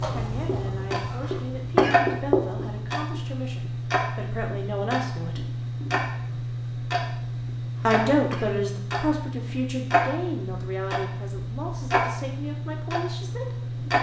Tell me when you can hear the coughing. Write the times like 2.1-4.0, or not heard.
1.2-1.9, 7.8-8.5.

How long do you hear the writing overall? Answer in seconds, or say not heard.
3 s.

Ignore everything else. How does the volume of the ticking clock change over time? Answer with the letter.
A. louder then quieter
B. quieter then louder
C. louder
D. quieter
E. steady
E.